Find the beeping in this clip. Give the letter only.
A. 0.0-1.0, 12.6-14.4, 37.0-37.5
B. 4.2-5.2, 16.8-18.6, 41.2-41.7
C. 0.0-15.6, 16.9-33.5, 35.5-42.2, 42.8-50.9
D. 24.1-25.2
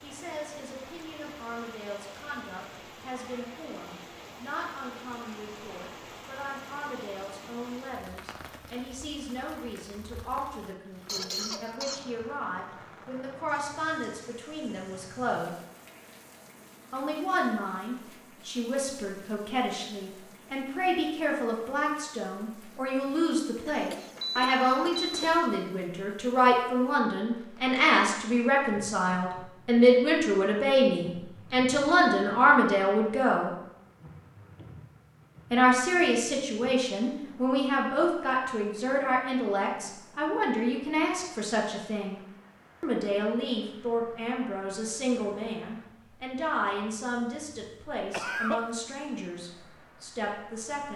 D.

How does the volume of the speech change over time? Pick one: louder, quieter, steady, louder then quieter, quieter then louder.
louder then quieter.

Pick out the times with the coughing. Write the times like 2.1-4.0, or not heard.
11.1-12.1, 23.6-25.4, 48.1-48.6.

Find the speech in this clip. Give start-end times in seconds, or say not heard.
0.0-15.6, 16.9-33.5, 35.5-42.2, 42.8-50.9.